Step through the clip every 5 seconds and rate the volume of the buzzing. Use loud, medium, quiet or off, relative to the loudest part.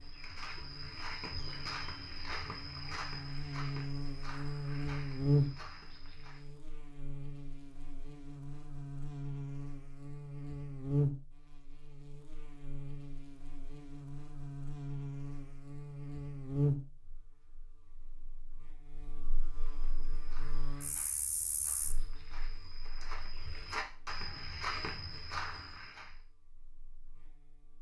medium, loud, loud, loud, quiet, quiet.